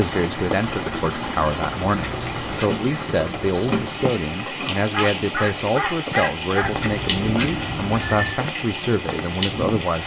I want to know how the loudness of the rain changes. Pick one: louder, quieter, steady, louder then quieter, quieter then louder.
steady.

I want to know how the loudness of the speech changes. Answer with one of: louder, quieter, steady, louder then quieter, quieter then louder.
steady.